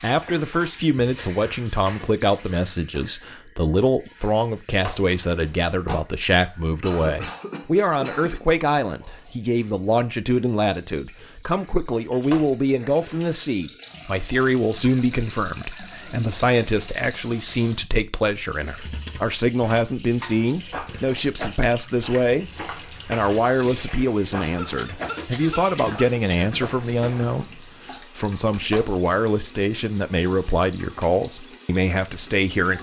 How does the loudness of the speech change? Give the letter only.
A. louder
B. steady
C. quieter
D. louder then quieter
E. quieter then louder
B.